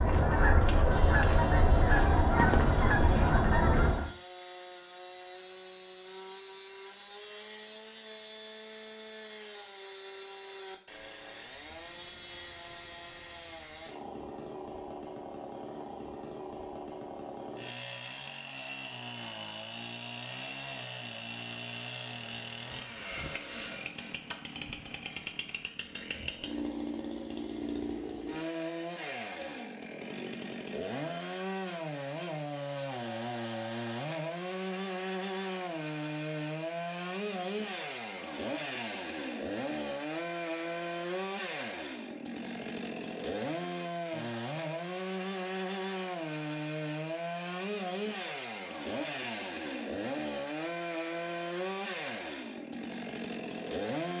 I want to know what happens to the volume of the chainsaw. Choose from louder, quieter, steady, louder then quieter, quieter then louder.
louder.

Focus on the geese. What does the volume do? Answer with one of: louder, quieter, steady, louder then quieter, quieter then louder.
steady.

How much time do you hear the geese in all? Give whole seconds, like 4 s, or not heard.
4 s.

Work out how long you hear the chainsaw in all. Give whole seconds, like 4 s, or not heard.
54 s.